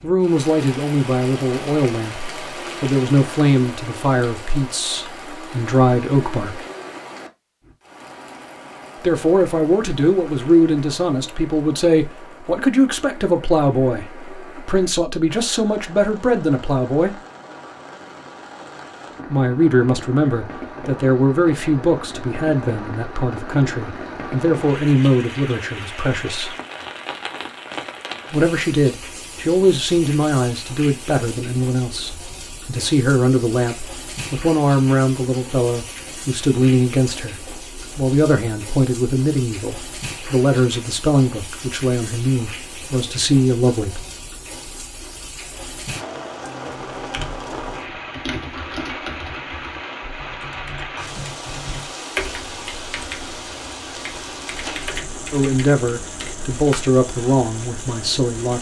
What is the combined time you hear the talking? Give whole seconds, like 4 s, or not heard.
40 s.